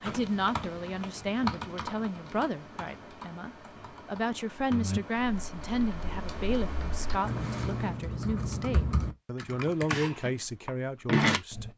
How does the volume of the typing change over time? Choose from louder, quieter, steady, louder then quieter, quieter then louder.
quieter then louder.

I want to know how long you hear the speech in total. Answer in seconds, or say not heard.
12 s.